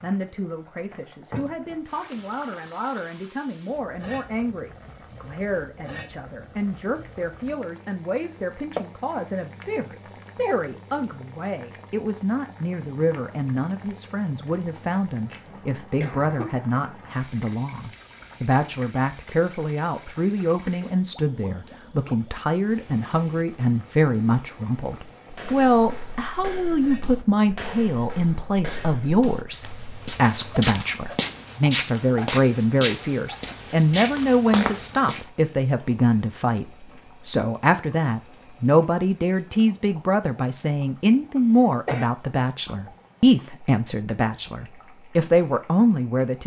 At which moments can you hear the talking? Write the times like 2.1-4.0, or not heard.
0.0-46.4.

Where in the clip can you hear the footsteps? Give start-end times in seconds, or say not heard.
25.3-35.2.